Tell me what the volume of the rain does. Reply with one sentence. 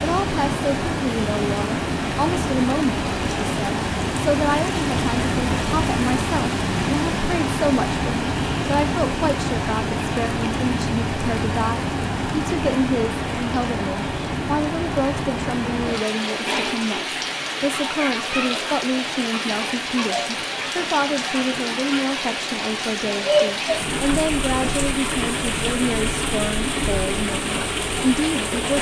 The loudness of the rain stays about the same.